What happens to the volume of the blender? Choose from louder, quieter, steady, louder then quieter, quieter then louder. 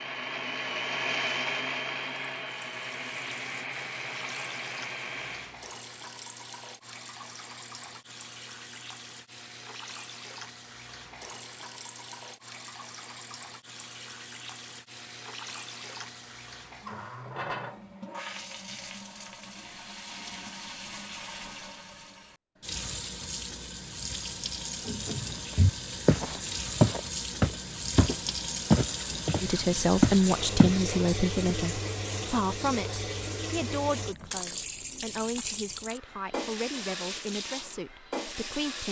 quieter.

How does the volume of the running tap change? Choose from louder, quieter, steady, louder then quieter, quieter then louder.
louder.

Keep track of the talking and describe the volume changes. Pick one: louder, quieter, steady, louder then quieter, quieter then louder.
quieter.